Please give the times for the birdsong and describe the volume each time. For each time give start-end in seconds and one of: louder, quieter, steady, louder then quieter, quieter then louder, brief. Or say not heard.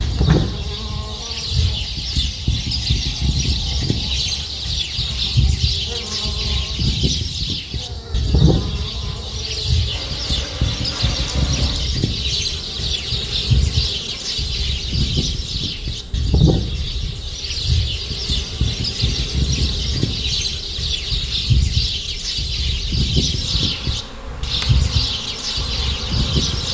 0.0-26.6 steady.